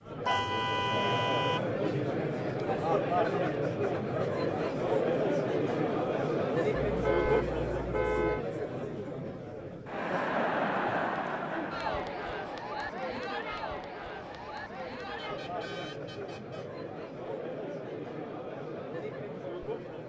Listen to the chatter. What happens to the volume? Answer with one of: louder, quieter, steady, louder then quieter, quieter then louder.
quieter.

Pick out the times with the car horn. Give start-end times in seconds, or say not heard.
0.2-1.6, 6.8-8.4, 14.2-16.7.